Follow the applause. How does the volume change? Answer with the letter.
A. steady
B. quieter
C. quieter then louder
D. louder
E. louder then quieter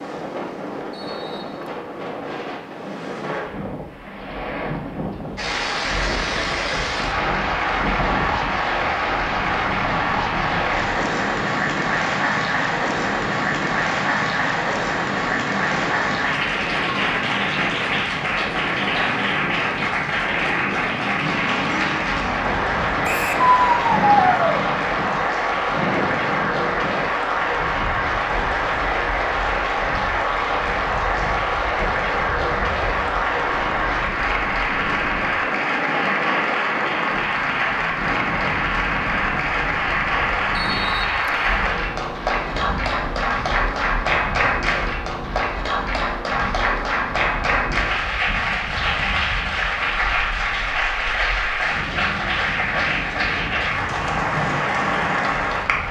A.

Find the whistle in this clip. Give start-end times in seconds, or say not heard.
0.9-1.8, 23.0-23.4, 40.5-41.4.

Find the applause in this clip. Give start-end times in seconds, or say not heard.
5.3-55.8.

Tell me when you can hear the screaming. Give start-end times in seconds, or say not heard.
23.4-24.6.